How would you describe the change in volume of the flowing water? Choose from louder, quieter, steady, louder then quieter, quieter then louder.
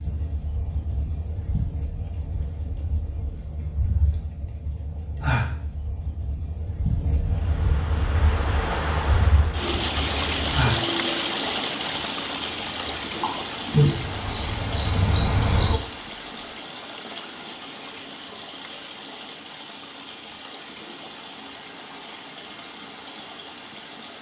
quieter.